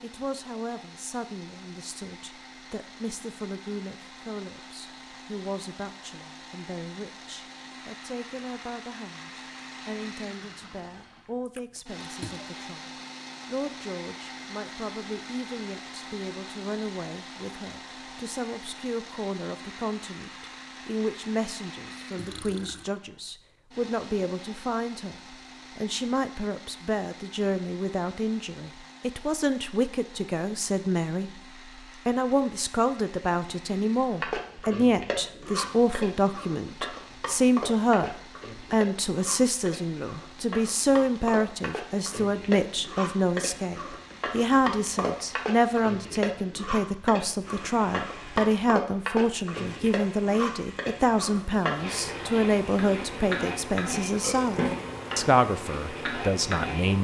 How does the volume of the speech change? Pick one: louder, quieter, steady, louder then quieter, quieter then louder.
louder.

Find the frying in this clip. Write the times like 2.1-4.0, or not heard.
34.1-57.0.